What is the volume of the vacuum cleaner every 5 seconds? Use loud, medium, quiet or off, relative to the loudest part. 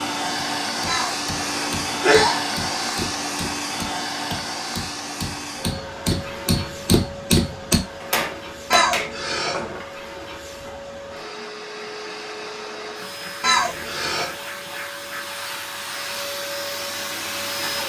loud, medium, medium, loud.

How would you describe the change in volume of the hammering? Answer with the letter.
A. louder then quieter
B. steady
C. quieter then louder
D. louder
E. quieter
D.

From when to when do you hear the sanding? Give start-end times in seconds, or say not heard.
not heard.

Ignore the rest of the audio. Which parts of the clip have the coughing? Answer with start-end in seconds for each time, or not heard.
0.8-2.4, 8.7-9.7, 13.4-14.3.